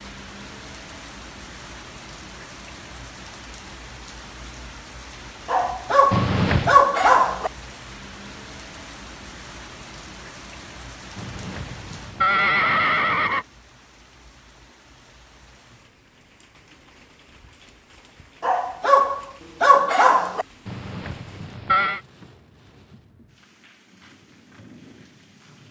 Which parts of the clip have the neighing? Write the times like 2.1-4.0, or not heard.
6.1-6.8, 11.2-13.4, 20.6-22.0.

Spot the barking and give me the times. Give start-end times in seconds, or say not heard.
5.5-7.5, 18.4-20.4.